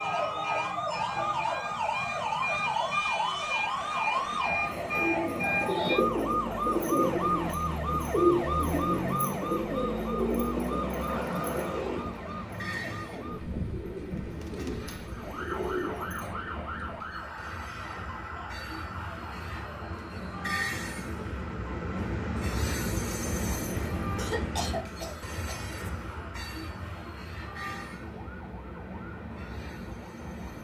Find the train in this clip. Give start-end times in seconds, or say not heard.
0.0-30.5.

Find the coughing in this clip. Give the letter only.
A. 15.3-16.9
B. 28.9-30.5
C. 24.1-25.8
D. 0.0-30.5
C.